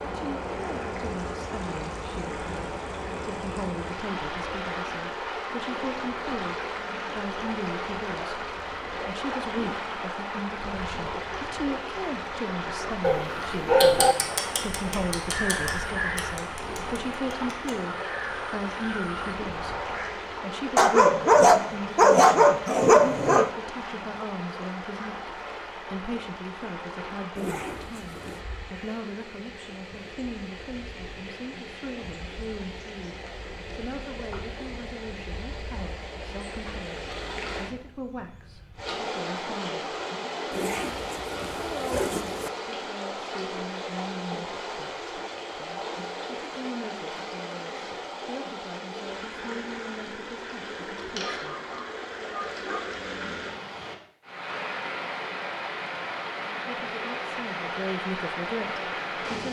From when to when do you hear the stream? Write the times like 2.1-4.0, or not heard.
0.0-59.4.